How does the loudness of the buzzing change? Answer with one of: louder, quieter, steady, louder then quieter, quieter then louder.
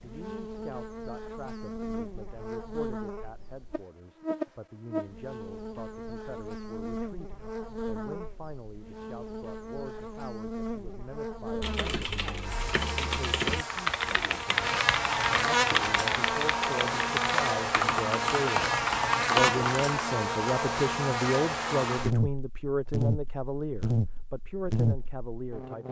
louder.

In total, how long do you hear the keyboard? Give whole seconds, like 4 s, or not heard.
8 s.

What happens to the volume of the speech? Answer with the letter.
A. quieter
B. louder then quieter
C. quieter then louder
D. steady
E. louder
E.